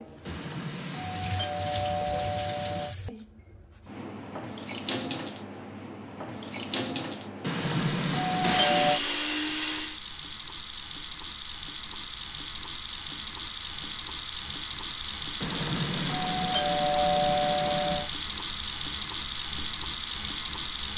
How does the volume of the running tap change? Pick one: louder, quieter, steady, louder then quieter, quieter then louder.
louder.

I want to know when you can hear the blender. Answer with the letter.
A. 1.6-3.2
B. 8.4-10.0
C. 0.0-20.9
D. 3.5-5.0
B.